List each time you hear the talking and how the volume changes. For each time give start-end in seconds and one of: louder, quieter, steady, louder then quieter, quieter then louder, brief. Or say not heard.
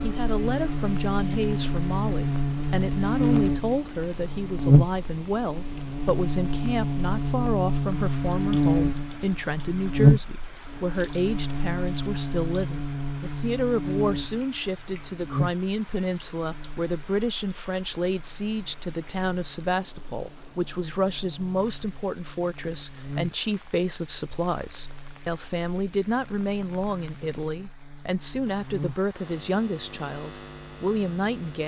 0.0-31.6 steady.